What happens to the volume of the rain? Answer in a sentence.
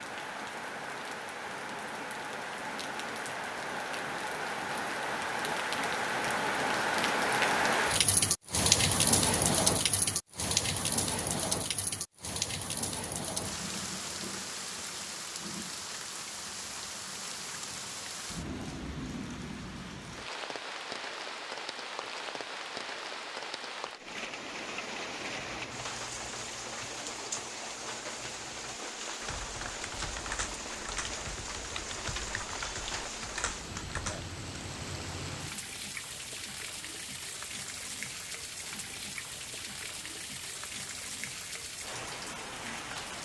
The loudness of the rain goes down.